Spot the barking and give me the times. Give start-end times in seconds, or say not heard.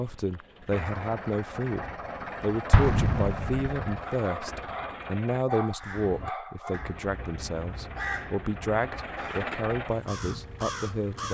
4.0-7.0.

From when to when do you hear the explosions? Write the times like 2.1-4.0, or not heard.
2.7-4.0.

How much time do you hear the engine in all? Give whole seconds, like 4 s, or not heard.
10 s.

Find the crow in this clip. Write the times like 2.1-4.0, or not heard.
5.8-11.2.